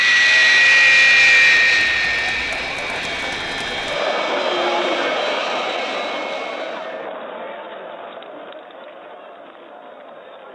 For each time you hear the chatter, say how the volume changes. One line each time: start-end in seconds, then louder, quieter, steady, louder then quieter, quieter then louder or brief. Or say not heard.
0.2-10.5 louder then quieter.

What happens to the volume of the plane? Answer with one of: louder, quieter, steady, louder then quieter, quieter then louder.
quieter.